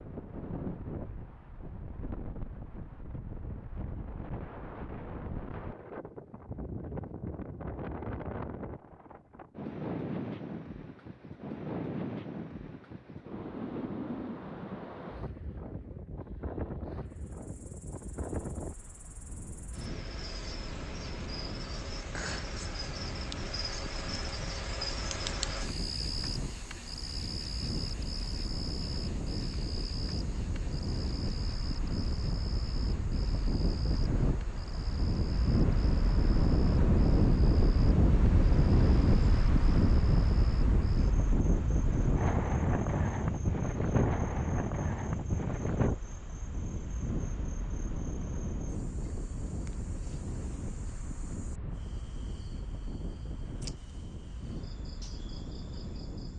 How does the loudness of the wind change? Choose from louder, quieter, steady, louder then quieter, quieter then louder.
louder then quieter.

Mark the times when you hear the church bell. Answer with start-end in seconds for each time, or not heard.
not heard.